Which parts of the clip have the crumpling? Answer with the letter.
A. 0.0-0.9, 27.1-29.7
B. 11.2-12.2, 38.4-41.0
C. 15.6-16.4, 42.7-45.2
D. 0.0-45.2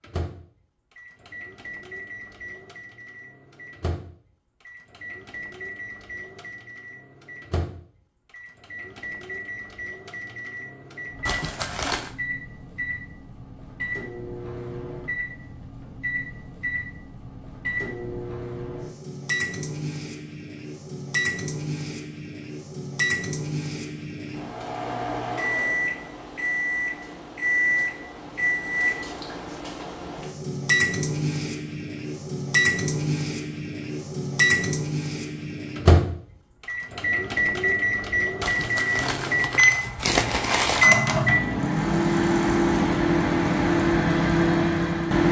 B.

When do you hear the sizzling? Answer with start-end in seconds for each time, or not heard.
not heard.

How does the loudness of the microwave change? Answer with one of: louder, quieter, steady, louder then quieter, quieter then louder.
louder.